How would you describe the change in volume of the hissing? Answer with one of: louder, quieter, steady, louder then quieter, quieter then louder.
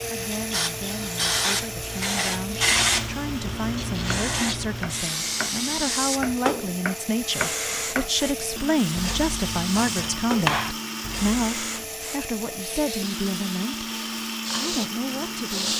quieter.